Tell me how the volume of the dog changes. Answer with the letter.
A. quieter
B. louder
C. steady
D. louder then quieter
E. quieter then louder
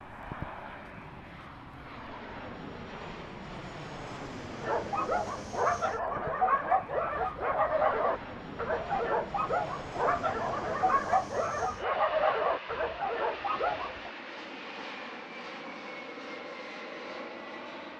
C.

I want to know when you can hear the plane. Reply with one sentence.
You can hear the plane from 0.0 to 17.9 s.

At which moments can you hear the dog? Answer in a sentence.
The dog can be heard from 4.6 to 14.1 s.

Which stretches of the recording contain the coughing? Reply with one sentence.
The coughing can't be heard in this clip.